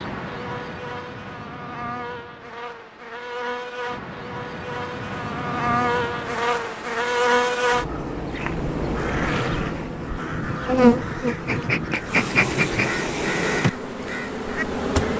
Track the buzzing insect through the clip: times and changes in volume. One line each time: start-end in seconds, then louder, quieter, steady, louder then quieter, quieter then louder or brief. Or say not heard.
0.0-15.1 louder.